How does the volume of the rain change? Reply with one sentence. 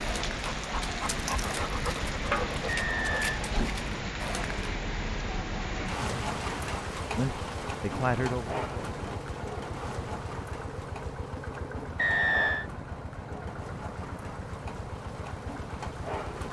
The volume of the rain goes down.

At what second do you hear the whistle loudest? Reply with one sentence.
The loudest moment of the whistle is at 12 seconds.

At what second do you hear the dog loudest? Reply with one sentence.
The volume of the dog peaks at 2 seconds.